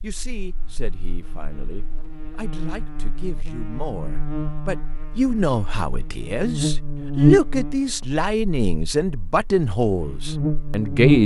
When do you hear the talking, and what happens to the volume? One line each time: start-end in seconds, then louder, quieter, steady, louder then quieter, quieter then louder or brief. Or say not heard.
0.0-11.2 louder.